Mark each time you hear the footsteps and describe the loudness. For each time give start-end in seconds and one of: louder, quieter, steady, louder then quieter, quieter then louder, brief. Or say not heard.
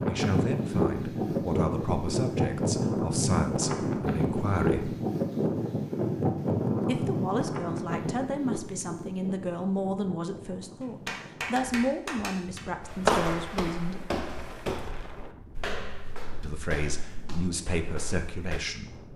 12.8-18.6 quieter.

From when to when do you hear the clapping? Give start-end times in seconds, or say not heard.
10.8-12.7.